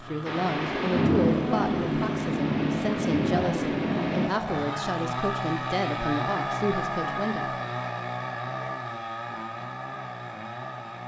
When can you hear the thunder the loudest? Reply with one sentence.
The volume of the thunder peaks at 1 second.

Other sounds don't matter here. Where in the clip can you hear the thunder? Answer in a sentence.
The thunder can be heard from 0.2 to 4.2 s.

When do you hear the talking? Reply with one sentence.
The talking can be heard from 0.0 to 7.5 s.